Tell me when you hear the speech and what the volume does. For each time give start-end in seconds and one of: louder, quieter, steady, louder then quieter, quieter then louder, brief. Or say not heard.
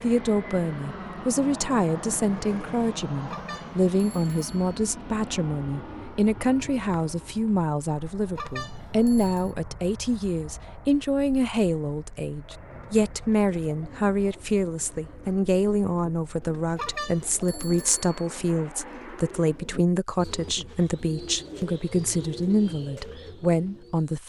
0.0-24.2 steady.